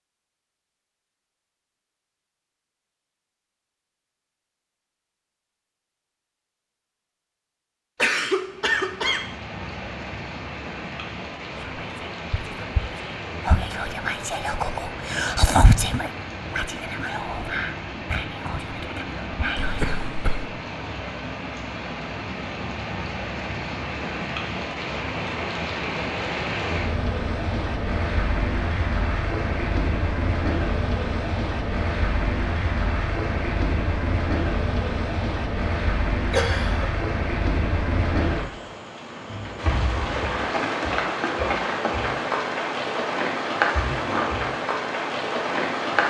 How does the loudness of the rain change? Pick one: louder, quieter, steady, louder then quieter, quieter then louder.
louder.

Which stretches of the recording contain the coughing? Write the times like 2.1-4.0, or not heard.
8.0-9.3, 19.6-20.4, 36.3-36.9.